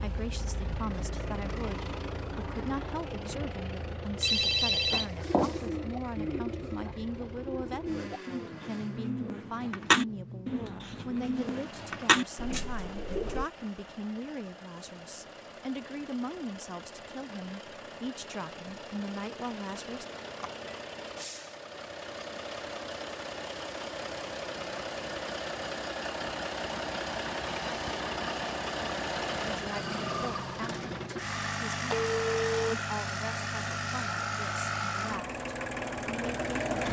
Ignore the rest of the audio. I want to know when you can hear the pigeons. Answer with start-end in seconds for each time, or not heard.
5.1-13.5.